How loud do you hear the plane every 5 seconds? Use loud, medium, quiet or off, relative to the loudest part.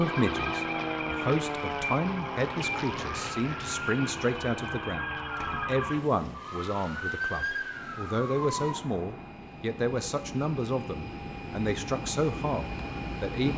loud, medium, loud.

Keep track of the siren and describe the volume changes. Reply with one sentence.
The volume of the siren stays about the same.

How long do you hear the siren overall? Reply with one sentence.
You can hear the siren for 9 seconds altogether.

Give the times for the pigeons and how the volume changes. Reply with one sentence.
You can't hear the pigeons here.